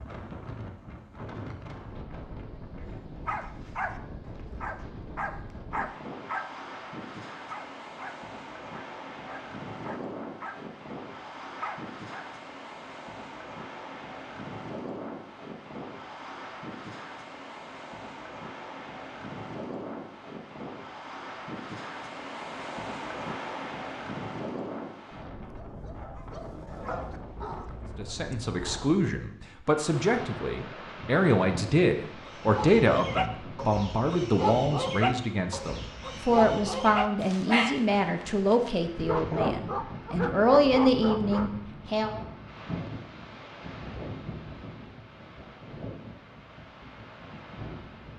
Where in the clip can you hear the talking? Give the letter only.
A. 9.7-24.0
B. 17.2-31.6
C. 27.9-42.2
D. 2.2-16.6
C.